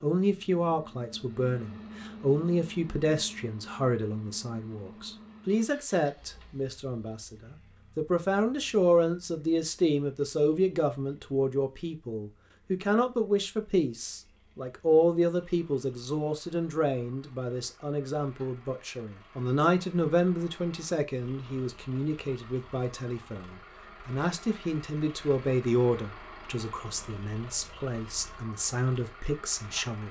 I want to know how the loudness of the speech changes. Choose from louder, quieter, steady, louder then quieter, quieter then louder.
steady.